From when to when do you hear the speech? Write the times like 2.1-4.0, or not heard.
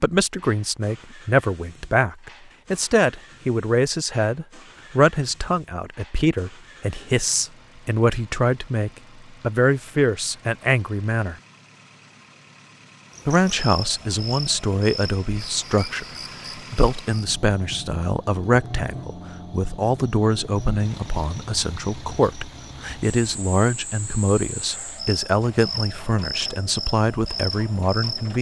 0.0-11.3, 13.2-28.3.